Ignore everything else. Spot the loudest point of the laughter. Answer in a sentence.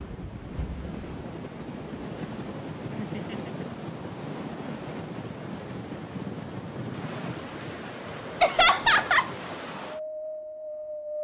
The volume of the laughter peaks at 9 seconds.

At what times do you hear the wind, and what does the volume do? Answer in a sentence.
The wind can be heard from 0.0 to 11.1 s, at a steady volume.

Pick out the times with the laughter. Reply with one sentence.
You can hear the laughter from 3.0 to 3.5 s and from 8.4 to 9.3 s.